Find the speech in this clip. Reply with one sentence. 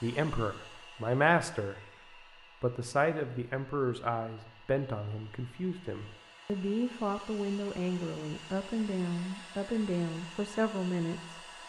The speech can be heard from 0.0 to 1.8 s and from 2.6 to 11.4 s.